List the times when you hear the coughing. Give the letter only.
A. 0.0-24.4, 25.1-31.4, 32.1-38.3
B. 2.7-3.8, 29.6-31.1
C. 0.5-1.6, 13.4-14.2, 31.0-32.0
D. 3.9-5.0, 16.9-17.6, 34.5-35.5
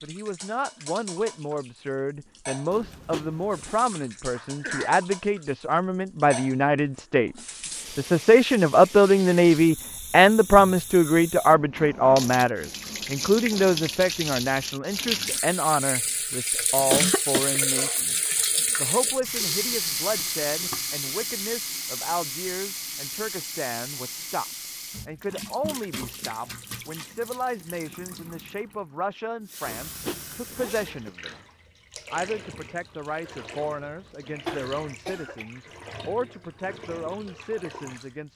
D.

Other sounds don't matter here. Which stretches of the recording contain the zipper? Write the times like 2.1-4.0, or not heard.
2.7-3.8, 29.6-31.1.